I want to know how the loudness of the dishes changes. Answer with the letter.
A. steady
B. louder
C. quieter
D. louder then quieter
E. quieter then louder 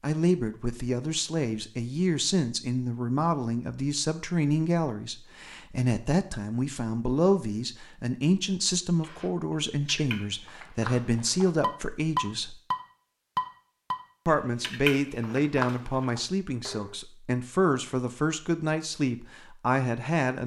D.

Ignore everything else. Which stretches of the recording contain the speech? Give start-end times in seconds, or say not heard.
0.0-12.6, 14.2-20.4.